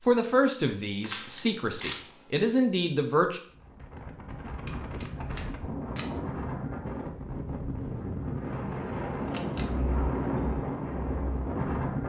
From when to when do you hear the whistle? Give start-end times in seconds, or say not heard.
not heard.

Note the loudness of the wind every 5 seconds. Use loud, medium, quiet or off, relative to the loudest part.
medium, loud, loud.